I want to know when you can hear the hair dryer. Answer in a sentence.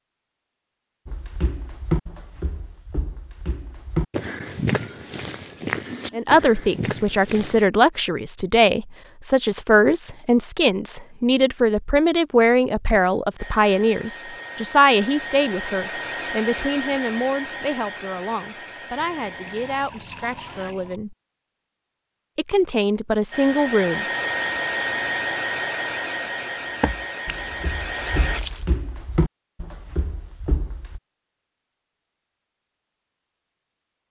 You can hear the hair dryer from 13.3 to 20.8 s and from 23.3 to 28.4 s.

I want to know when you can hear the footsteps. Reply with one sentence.
You can hear the footsteps from 1.1 to 7.7 s and from 26.8 to 31.0 s.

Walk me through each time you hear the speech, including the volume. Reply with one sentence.
You can hear the speech from 6.1 to 21.1 s, getting quieter; and briefly from 22.4 to 24.1 s.